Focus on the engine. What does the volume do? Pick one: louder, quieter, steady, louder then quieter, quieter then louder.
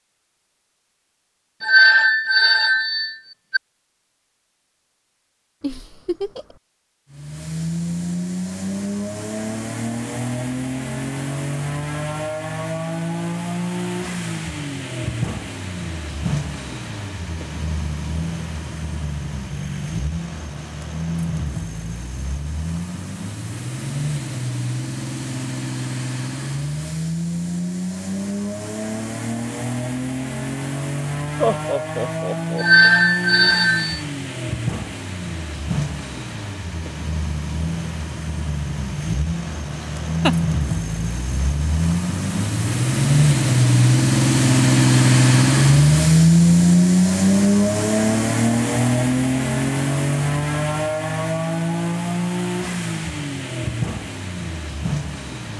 louder.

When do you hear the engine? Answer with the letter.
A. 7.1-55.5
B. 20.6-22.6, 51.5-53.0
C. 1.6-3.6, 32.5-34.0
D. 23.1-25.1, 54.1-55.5
A.